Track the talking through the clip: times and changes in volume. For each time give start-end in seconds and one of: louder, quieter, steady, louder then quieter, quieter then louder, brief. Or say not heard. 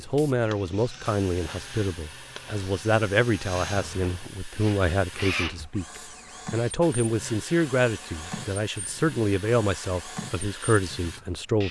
0.0-11.6 steady.